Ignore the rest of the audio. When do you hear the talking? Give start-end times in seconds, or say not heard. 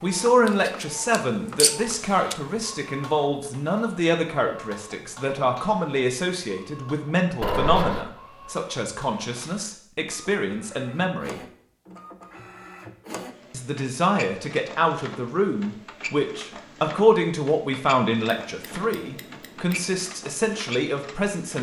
0.0-11.4, 13.5-21.5.